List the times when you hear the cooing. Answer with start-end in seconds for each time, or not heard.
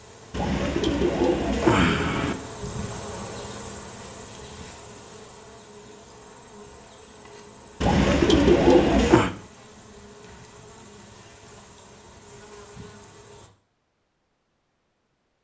0.3-2.4, 7.8-9.3.